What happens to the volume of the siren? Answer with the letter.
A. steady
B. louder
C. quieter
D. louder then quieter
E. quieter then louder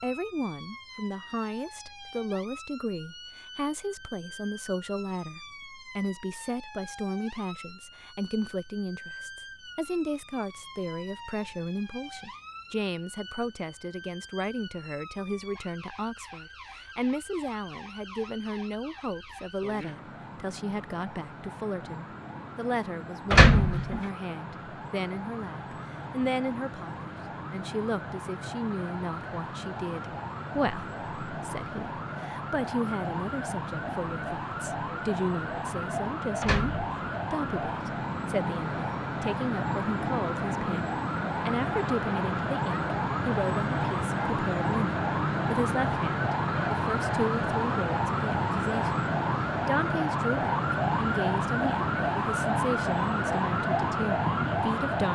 B.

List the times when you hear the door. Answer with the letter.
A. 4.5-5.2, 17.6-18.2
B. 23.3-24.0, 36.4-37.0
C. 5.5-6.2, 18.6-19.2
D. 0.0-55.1
B.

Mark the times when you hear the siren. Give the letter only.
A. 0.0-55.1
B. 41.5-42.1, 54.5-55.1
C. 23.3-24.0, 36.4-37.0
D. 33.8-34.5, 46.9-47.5
A.